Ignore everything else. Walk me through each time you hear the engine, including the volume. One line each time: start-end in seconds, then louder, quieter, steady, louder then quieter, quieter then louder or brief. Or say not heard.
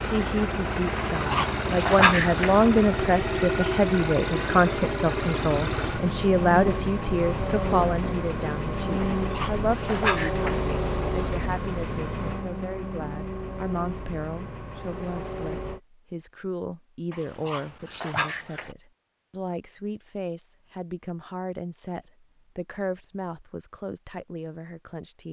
0.0-15.8 quieter.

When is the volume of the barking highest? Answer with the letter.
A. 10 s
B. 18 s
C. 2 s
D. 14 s
C.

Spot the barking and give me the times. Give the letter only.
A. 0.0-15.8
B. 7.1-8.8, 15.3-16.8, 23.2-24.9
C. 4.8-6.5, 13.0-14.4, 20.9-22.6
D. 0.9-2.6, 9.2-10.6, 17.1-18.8
D.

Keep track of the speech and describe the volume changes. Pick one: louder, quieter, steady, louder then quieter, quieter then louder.
quieter.